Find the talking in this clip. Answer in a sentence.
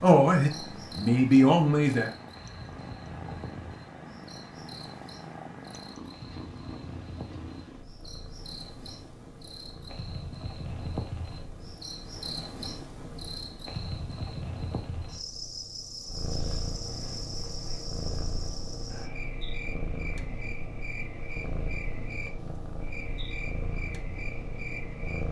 You can hear the talking from 0.0 to 2.1 s.